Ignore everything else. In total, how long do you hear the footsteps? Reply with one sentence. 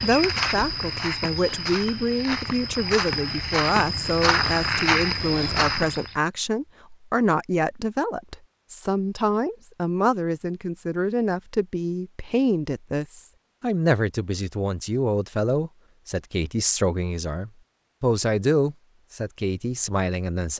You can hear the footsteps for 6 seconds altogether.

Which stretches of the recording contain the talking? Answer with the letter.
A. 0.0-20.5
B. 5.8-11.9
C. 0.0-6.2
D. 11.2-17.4
A.